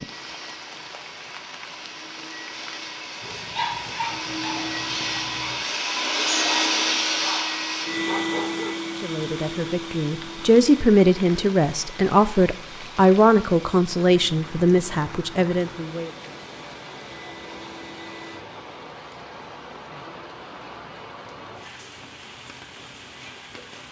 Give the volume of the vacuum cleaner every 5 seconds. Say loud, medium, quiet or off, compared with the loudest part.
medium, loud, quiet, quiet, off.